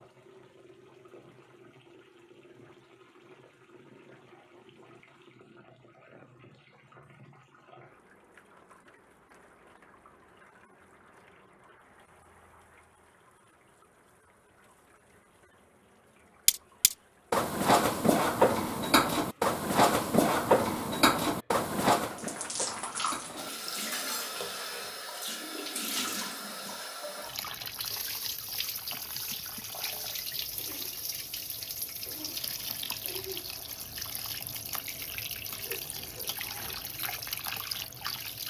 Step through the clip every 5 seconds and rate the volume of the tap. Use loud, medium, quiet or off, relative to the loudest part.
quiet, quiet, quiet, quiet, loud, loud, loud, loud.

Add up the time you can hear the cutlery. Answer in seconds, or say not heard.
8 s.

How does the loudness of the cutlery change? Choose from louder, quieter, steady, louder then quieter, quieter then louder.
quieter.